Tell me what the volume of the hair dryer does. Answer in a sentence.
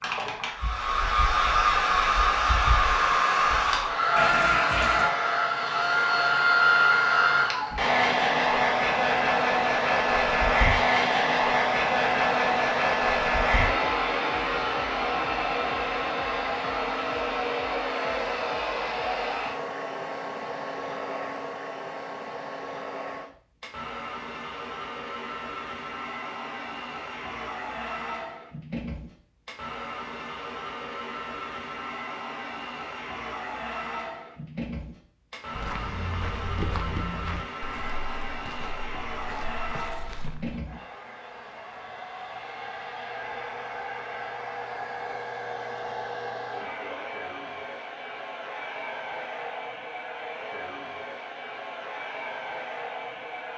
The volume of the hair dryer goes down.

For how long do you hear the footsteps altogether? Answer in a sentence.
The footsteps can be heard for 5 seconds in total.